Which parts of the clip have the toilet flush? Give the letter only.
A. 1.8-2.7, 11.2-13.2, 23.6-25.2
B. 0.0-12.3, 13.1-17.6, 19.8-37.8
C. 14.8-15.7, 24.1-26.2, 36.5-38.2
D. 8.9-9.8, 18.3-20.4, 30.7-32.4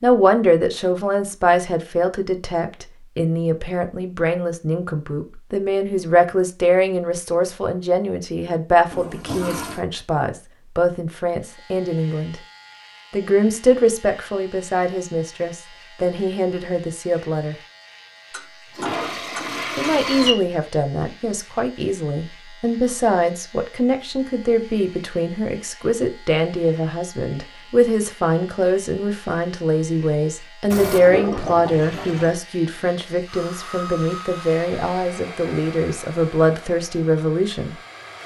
D.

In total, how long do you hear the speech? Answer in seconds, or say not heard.
35 s.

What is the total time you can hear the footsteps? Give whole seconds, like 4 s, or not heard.
not heard.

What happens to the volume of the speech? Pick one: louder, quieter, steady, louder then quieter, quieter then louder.
steady.